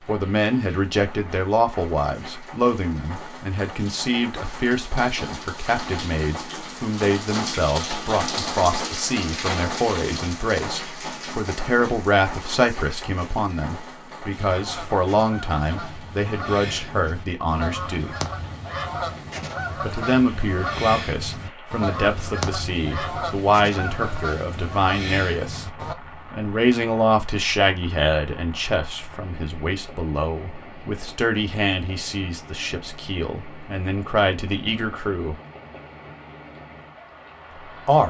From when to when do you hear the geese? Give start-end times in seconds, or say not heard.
14.3-25.9.